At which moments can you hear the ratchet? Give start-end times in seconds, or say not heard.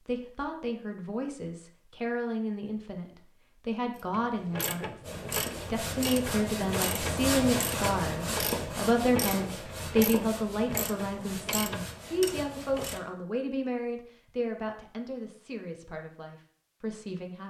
4.0-13.0.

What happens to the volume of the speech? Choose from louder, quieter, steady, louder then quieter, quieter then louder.
louder then quieter.